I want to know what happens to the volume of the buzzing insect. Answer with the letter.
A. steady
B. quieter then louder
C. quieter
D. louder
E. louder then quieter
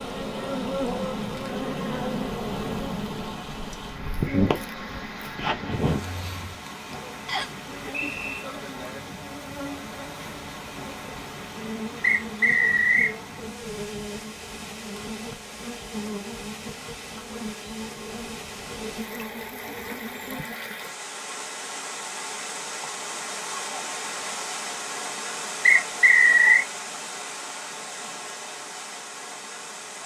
C.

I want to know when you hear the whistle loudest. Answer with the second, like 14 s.
26 s.